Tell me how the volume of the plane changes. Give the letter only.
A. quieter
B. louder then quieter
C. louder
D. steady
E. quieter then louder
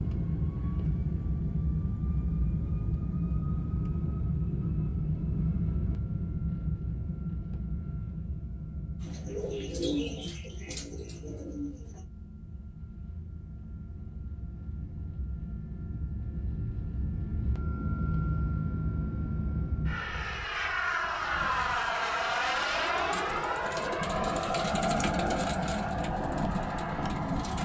E.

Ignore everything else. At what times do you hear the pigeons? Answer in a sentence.
You can hear the pigeons from 9.0 to 12.1 s and from 22.9 to 27.5 s.